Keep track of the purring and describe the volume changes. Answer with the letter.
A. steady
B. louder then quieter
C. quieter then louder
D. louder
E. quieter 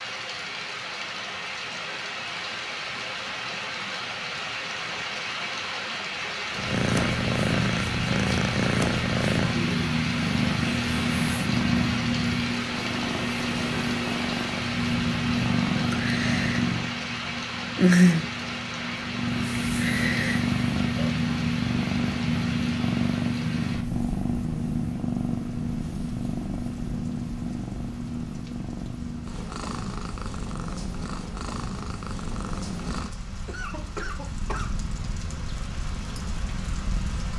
E.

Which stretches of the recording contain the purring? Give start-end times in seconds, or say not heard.
6.5-37.2.